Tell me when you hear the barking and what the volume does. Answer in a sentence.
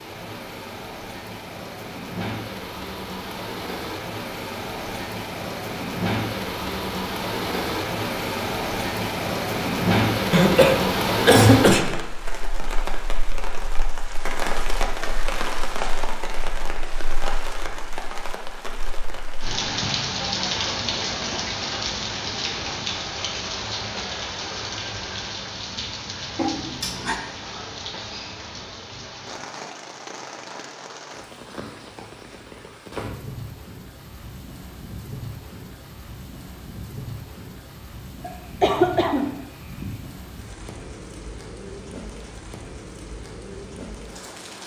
You can't hear the barking here.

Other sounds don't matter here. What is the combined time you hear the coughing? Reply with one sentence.
You can hear the coughing for 4 seconds altogether.